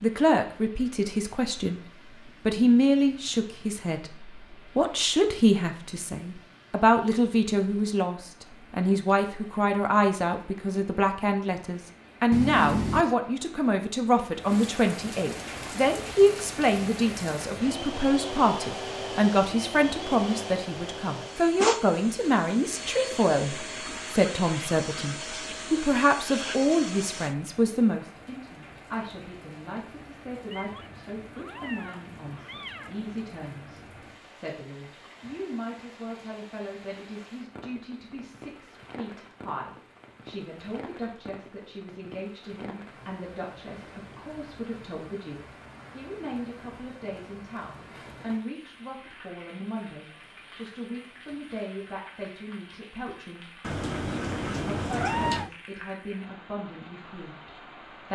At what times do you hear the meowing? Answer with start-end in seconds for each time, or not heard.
12.3-13.2, 30.5-33.1, 53.6-55.5.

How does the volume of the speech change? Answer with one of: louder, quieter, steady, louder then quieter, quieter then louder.
quieter.